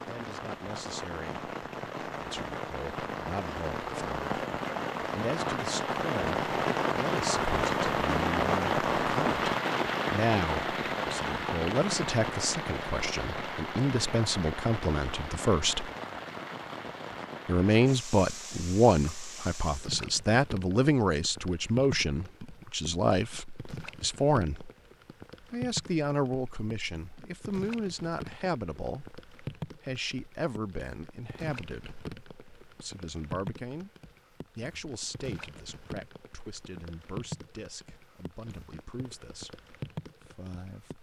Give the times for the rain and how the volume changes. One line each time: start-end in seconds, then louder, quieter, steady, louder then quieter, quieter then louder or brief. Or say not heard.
0.0-40.9 quieter.